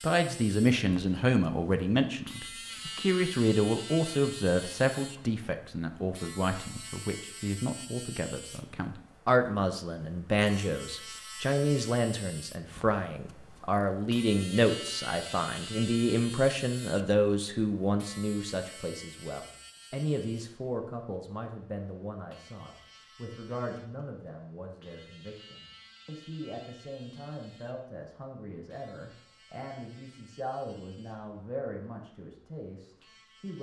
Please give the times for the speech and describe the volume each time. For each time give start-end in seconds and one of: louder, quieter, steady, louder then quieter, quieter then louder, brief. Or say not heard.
0.0-33.5 quieter.